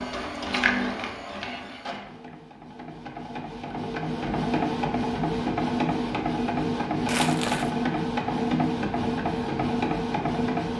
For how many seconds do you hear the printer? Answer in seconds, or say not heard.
11 s.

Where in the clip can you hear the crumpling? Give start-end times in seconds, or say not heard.
7.0-7.7.